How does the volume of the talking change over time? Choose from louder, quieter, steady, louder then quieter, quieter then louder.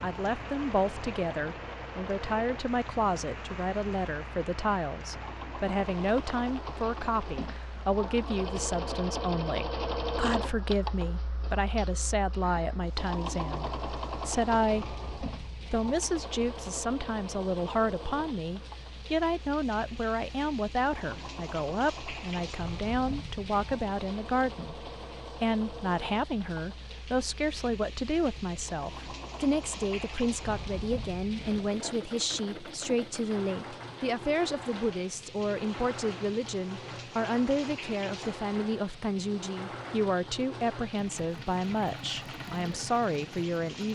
steady.